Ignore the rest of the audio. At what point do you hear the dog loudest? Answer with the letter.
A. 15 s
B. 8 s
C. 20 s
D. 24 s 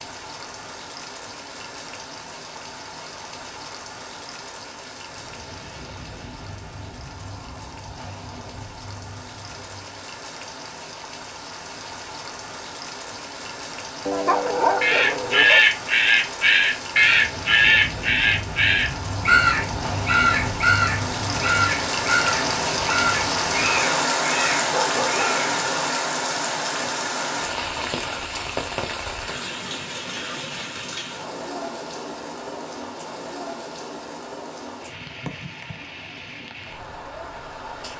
A.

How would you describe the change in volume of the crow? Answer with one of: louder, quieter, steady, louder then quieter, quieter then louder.
quieter.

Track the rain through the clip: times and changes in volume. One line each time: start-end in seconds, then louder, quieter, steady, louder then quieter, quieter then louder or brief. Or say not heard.
0.0-37.9 louder then quieter.